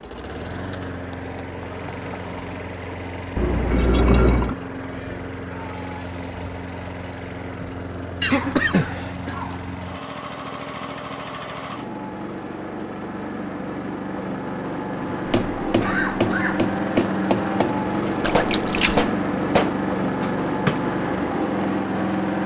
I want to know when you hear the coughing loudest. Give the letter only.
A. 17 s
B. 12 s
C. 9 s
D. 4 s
C.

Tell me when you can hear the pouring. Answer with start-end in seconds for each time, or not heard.
3.4-4.5, 18.2-19.1.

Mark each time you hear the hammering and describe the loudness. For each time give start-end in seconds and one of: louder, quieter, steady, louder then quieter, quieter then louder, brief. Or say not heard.
15.0-20.8 steady.